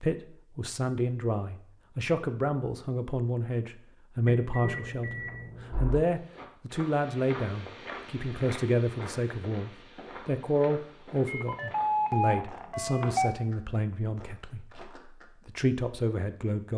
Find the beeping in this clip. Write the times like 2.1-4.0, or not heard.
4.2-6.0, 11.2-13.3.